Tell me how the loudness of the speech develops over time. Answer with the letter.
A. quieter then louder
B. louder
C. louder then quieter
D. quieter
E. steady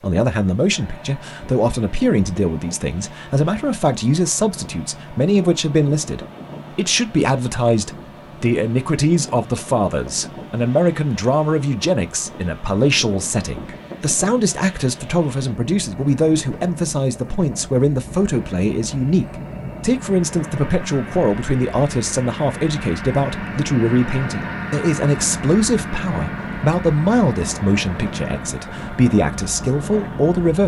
E.